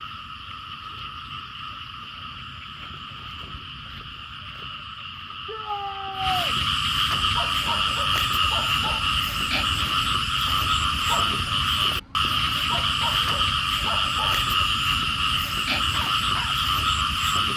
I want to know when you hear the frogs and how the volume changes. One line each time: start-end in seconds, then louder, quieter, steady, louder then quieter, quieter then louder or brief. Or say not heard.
0.0-17.5 louder.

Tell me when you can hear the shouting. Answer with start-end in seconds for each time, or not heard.
5.5-6.5.